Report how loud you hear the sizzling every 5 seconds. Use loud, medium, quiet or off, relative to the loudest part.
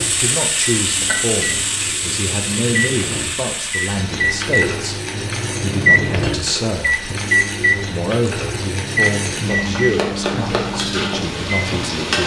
loud, medium, loud.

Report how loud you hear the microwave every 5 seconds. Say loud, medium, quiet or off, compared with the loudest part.
medium, loud, medium.